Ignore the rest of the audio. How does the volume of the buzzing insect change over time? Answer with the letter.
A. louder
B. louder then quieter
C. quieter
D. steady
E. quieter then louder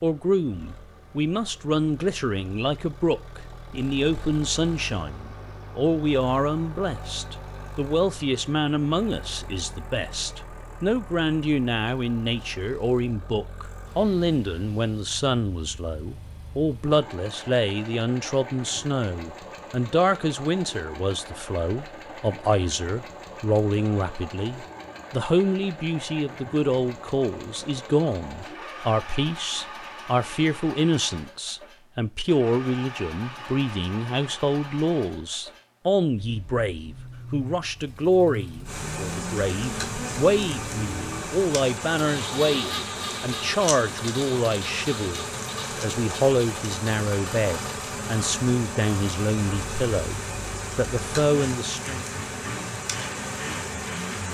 D.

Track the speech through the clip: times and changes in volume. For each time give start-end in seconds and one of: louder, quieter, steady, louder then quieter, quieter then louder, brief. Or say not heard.
0.0-50.1 steady
50.8-52.0 brief.